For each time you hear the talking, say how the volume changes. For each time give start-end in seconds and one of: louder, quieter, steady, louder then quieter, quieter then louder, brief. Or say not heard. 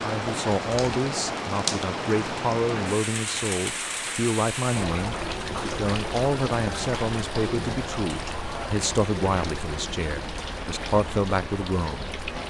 0.0-12.1 steady.